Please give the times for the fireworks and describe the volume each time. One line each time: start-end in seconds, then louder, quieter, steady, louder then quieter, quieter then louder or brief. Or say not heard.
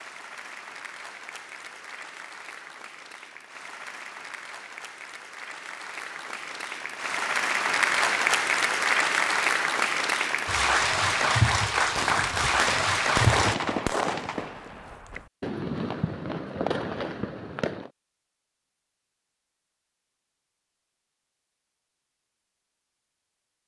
11.9-17.9 quieter then louder.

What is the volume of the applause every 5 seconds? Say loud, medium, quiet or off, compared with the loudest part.
quiet, loud, loud, off, off.